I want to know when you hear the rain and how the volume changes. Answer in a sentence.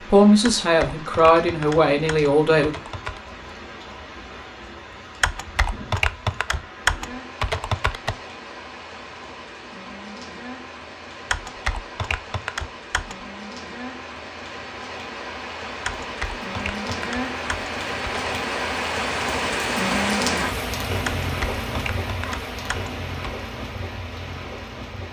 You can hear the rain from 0.0 to 25.0 s, getting louder.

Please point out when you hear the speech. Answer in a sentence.
You can hear the speech from 0.1 to 2.7 s.